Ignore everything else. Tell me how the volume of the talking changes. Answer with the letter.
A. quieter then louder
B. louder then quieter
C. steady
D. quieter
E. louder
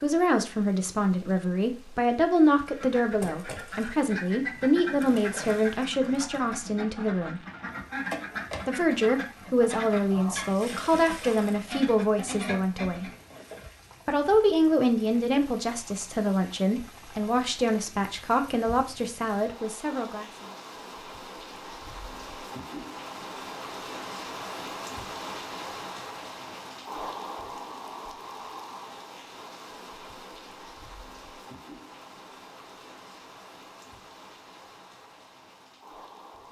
C.